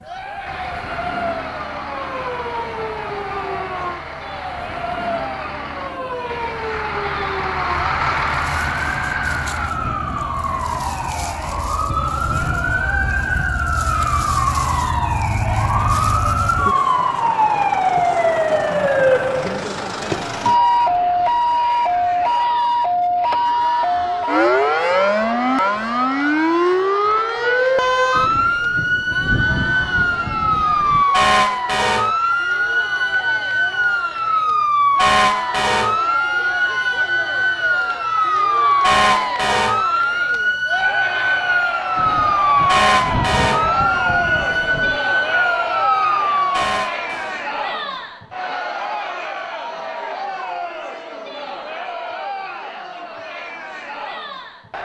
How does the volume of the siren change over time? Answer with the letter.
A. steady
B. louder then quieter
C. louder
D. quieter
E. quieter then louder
C.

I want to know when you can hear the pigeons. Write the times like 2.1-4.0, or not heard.
not heard.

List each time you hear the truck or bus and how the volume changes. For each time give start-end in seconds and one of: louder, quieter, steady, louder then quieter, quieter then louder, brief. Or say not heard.
0.0-9.8 louder.